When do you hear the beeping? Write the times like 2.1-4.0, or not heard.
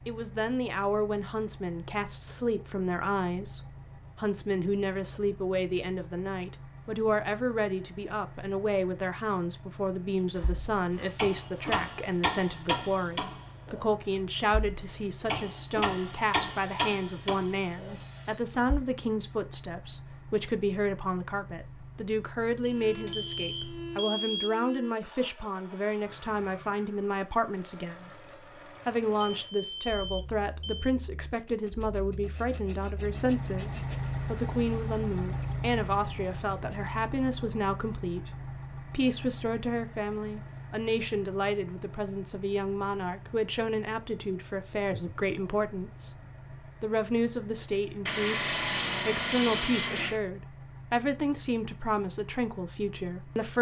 22.6-24.9, 29.2-30.9.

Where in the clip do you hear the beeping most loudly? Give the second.
24 s.